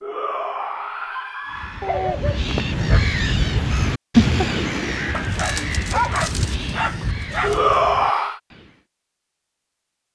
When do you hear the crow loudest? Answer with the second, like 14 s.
4 s.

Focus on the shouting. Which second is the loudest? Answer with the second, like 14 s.
8 s.